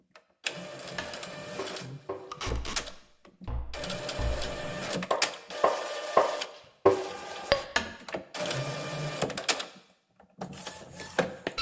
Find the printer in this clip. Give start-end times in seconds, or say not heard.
0.1-11.5.